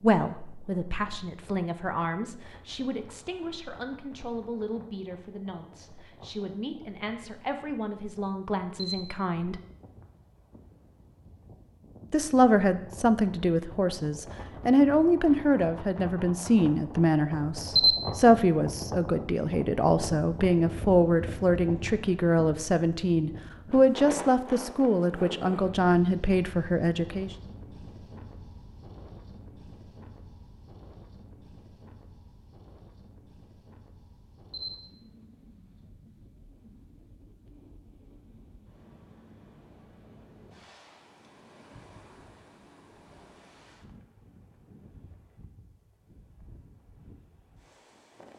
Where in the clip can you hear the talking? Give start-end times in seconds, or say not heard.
0.0-9.6, 12.1-27.4.